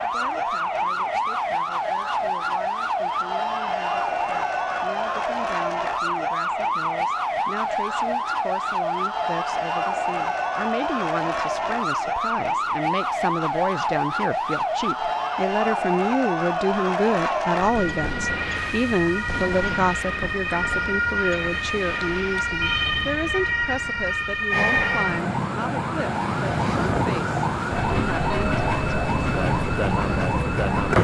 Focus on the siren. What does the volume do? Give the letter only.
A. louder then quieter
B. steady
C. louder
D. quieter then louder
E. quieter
B.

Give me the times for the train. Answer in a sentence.
You can hear the train from 24.5 to 30.9 s.